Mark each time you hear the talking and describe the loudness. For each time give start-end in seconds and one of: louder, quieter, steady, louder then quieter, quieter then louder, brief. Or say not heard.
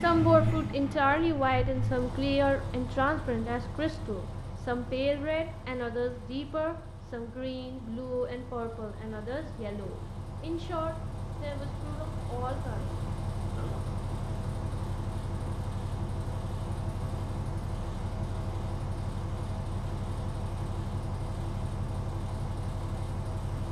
0.0-13.8 quieter.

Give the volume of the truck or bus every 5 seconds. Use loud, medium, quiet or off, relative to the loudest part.
loud, medium, loud, loud, loud.